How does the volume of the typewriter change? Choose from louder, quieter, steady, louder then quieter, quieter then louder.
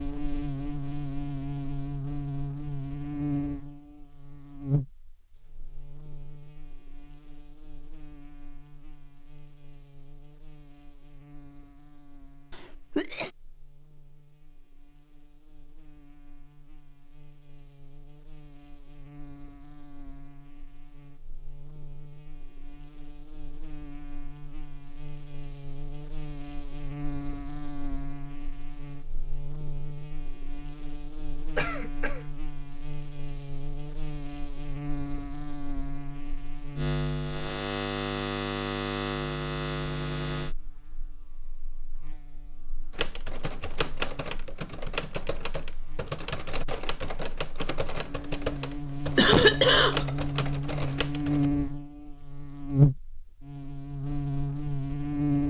steady.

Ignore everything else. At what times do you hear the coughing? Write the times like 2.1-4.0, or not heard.
12.5-13.3, 31.6-32.2, 49.1-50.0.